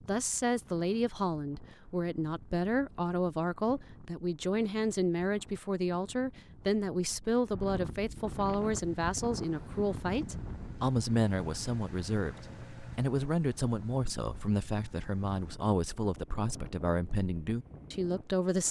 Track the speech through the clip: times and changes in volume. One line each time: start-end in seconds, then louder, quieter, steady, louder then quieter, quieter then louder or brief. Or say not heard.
0.1-18.6 steady.